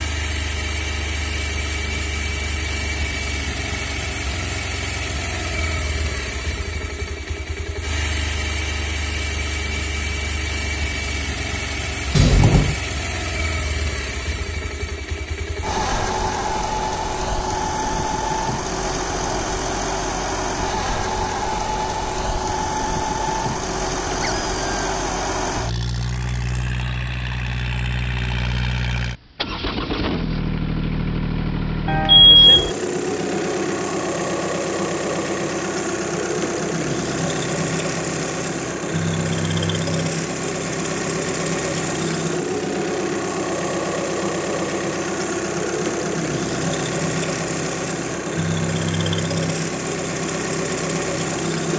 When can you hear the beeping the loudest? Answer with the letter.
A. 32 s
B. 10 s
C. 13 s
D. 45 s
A.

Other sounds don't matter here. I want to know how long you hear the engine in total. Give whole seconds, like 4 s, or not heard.
52 s.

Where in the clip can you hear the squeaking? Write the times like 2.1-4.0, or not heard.
24.1-24.9.